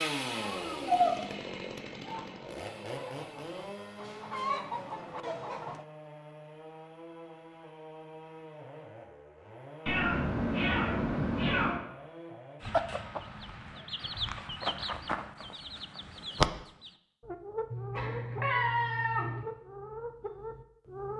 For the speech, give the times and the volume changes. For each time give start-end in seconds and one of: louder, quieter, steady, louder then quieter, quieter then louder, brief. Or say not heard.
not heard.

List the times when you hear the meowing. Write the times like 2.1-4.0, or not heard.
0.4-1.1, 9.8-11.8, 17.7-19.4.